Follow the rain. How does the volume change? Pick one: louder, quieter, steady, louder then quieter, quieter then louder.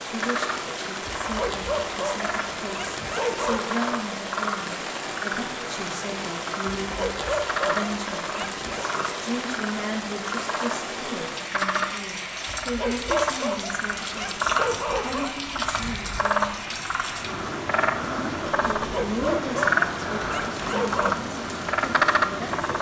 steady.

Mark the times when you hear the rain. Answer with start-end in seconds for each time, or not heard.
0.0-22.7.